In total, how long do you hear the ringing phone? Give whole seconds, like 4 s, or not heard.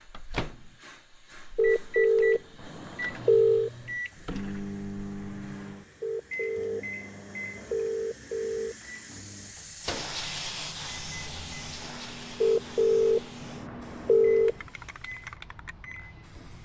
7 s.